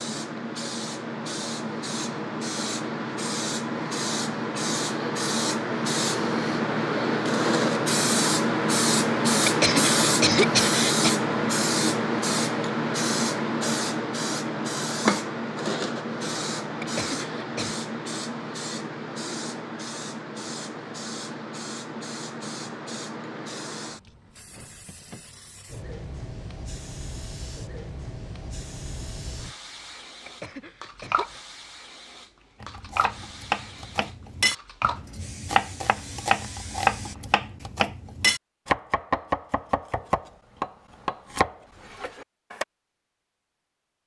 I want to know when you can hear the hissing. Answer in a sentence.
The hissing can be heard from 0.0 to 37.1 s.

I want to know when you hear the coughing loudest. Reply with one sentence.
The volume of the coughing peaks at 10 seconds.